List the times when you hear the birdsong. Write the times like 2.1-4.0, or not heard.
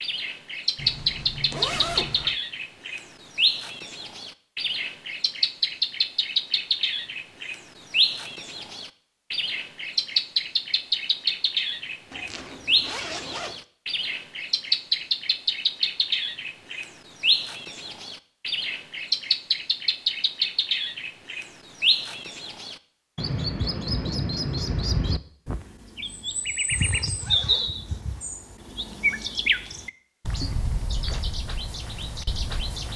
0.0-32.9.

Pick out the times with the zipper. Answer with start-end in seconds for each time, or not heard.
0.8-2.4, 12.1-13.6, 26.7-28.2.